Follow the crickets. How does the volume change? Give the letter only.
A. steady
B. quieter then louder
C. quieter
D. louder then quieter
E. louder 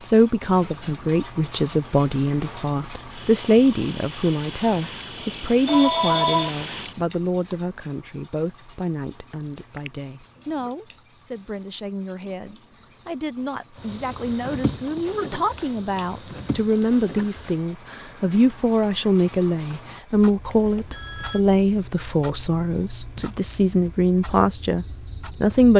D.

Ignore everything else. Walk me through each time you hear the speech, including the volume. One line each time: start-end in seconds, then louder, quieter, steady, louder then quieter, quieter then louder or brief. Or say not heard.
0.0-25.7 quieter then louder.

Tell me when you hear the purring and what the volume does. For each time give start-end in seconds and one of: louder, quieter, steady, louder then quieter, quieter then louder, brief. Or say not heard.
not heard.